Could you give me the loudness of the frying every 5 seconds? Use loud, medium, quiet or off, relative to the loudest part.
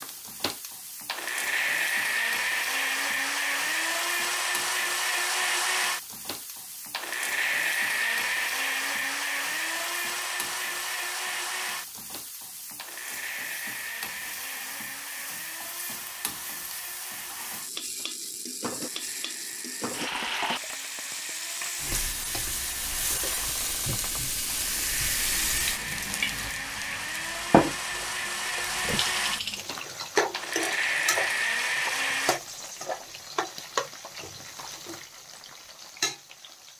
quiet, quiet, quiet, medium, loud, loud, loud, medium.